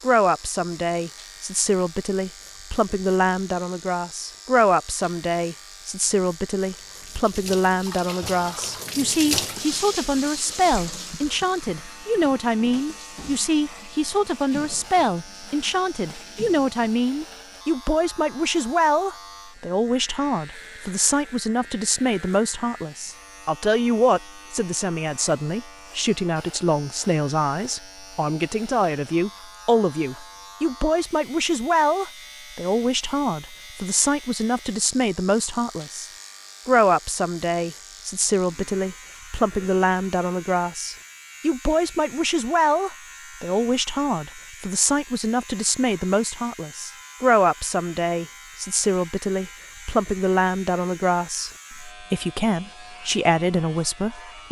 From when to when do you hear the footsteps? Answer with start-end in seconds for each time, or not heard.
not heard.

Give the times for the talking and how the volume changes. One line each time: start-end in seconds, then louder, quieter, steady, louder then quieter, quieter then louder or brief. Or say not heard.
0.0-54.4 steady.